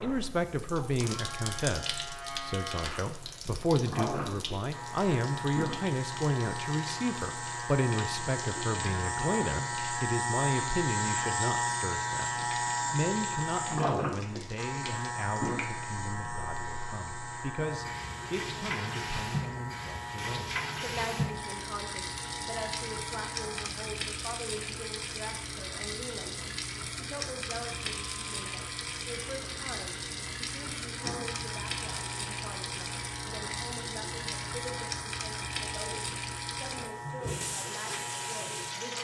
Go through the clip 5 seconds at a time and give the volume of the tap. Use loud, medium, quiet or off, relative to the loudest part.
medium, medium, medium, loud, loud, loud, loud, loud.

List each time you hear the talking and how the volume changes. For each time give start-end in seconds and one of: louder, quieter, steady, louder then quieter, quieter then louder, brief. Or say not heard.
0.0-39.0 quieter.